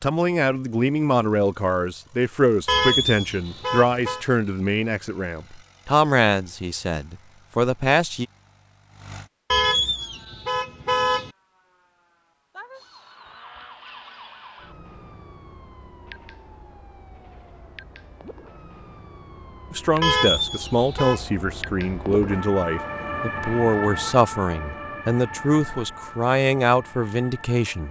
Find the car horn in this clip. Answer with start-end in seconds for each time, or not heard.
2.6-4.2, 9.5-11.3, 20.0-21.2.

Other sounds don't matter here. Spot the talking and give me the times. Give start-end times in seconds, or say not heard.
0.0-8.2, 19.7-27.8.